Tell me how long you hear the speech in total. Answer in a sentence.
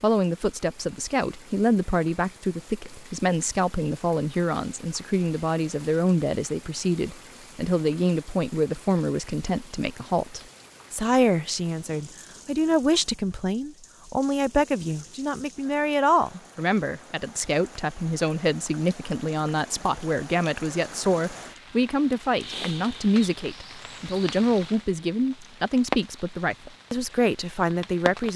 The speech can be heard for 28 seconds in total.